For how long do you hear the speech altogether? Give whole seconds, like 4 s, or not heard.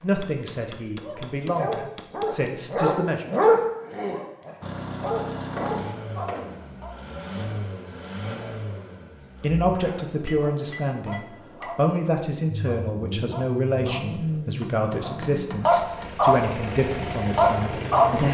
12 s.